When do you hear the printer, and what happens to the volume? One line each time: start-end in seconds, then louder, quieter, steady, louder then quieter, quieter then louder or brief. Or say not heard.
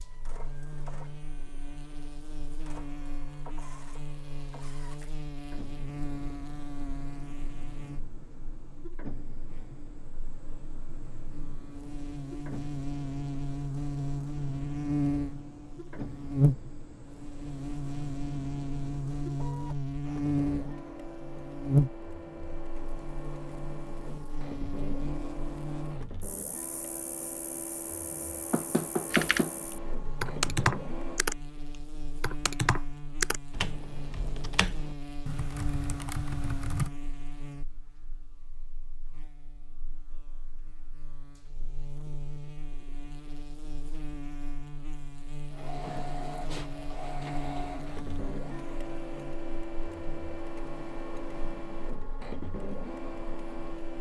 0.0-31.2 louder
45.5-53.9 steady.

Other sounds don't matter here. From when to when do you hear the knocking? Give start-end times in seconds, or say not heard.
28.5-29.6.